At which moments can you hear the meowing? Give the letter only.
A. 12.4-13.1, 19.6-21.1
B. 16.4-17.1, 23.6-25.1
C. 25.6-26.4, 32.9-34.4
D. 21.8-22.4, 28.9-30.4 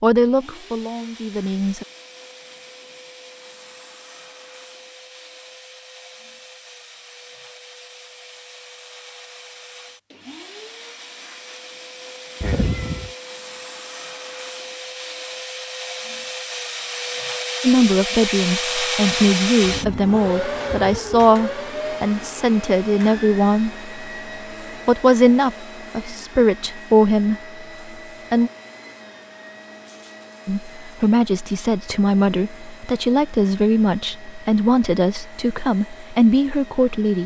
A.